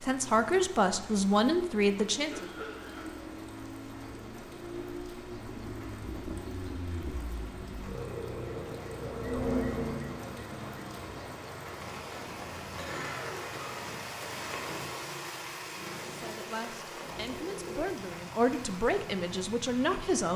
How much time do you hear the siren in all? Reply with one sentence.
The siren can be heard for 3 seconds in total.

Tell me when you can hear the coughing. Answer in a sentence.
You can hear the coughing from 2.2 to 3.1 s and from 12.8 to 13.8 s.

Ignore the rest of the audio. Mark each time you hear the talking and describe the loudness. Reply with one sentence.
The talking can be heard briefly from 0.0 to 2.5 s; and from 16.1 to 20.3 s, getting louder.